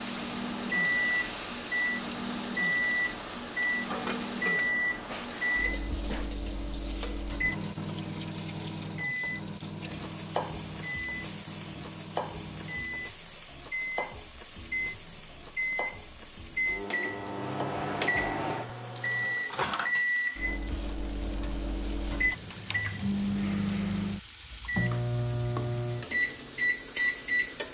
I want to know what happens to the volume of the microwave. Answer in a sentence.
The loudness of the microwave goes down, then up.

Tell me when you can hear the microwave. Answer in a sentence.
You can hear the microwave from 0.0 to 27.7 s.